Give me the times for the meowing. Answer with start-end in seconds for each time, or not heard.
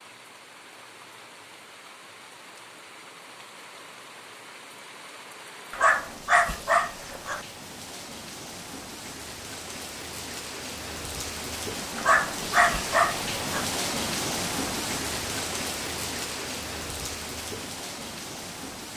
not heard.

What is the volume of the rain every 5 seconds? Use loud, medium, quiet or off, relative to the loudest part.
quiet, medium, loud, loud.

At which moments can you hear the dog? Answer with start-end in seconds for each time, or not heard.
5.7-7.5, 11.9-13.7.